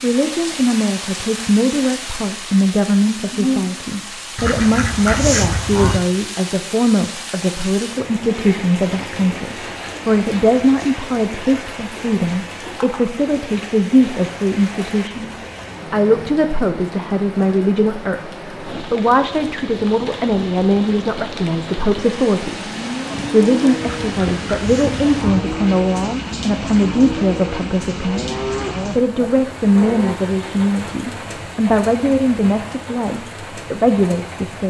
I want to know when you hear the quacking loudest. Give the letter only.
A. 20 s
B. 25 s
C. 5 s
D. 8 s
C.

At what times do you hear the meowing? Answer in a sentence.
You can't hear the meowing here.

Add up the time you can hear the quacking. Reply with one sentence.
You can hear the quacking for 3 seconds altogether.